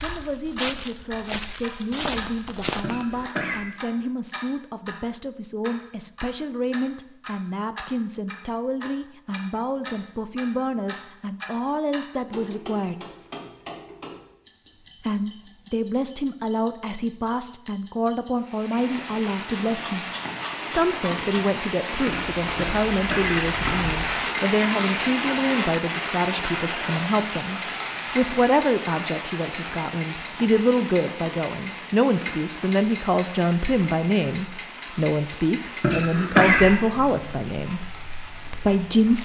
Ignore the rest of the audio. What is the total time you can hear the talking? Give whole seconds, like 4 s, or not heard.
36 s.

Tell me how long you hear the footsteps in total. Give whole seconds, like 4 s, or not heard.
3 s.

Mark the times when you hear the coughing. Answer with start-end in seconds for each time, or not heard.
2.8-3.6, 22.6-24.2, 35.8-36.7.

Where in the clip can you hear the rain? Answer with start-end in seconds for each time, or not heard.
18.4-39.2.